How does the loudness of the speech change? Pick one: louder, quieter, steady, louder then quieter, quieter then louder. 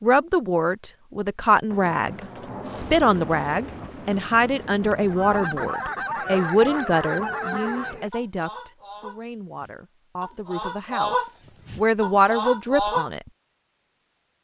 quieter then louder.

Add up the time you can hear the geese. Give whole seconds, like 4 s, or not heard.
8 s.